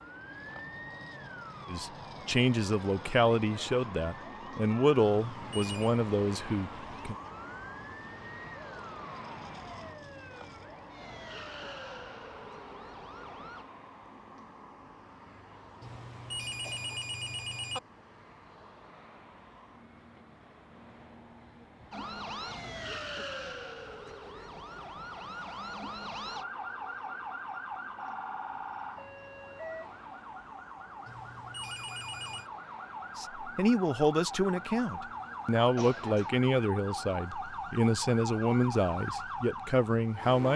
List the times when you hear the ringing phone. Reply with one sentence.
You can hear the ringing phone from 5.2 to 6.0 s, from 15.8 to 17.8 s and from 31.1 to 32.5 s.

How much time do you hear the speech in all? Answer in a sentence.
The speech can be heard for 13 seconds in total.